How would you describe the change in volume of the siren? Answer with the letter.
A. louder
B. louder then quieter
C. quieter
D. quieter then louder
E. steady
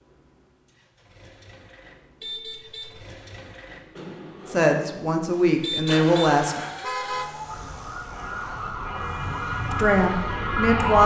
A.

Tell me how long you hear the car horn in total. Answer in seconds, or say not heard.
3 s.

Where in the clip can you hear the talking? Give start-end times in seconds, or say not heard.
4.5-6.7, 9.7-11.0.